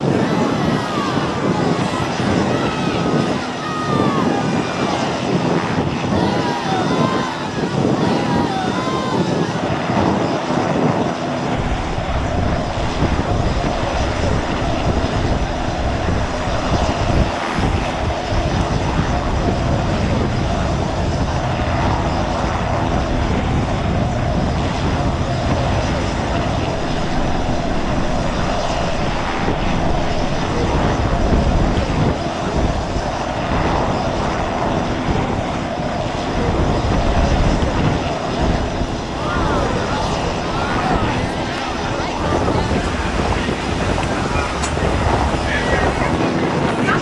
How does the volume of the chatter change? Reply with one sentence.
The loudness of the chatter stays about the same.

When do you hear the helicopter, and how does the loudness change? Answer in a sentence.
You can hear the helicopter from 0.0 to 46.9 s, at a steady volume.